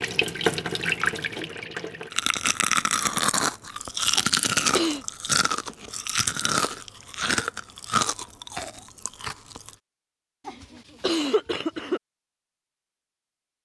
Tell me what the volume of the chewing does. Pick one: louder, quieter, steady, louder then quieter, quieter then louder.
quieter.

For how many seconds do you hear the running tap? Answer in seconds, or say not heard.
2 s.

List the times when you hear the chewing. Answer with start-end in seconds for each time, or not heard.
2.1-9.8.